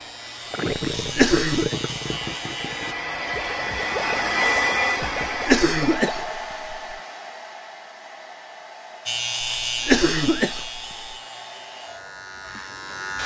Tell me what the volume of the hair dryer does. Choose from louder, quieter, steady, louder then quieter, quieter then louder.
louder then quieter.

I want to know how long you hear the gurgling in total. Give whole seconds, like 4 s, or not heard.
6 s.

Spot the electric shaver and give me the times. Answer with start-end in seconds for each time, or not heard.
0.0-3.0, 9.1-13.2.